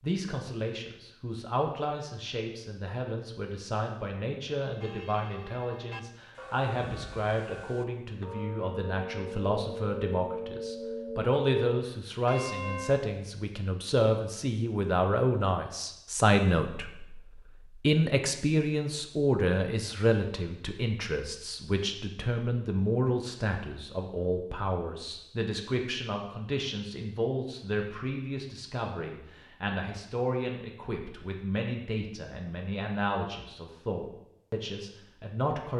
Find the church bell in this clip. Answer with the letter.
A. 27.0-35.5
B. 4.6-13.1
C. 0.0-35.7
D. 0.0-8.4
B.